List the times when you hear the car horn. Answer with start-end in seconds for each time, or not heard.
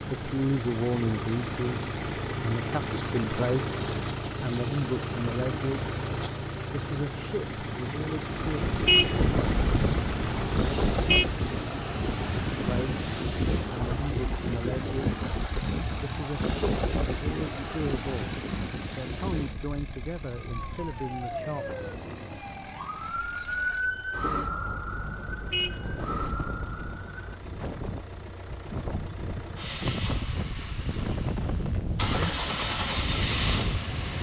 8.7-11.2, 25.2-27.1.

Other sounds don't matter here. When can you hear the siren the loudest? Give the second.
24 s.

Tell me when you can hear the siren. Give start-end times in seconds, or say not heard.
20.4-27.4.